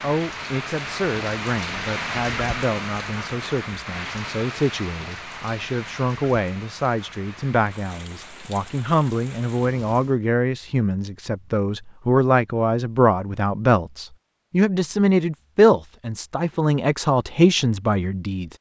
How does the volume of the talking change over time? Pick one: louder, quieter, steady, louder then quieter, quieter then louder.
louder.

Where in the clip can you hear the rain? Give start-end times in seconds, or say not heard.
0.0-10.2.